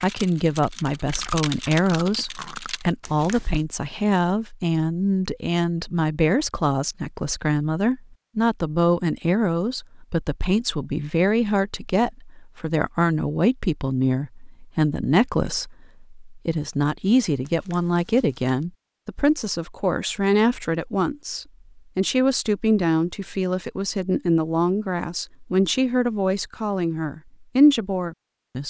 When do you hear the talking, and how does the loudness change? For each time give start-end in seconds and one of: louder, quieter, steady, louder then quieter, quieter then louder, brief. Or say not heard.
0.0-28.6 steady.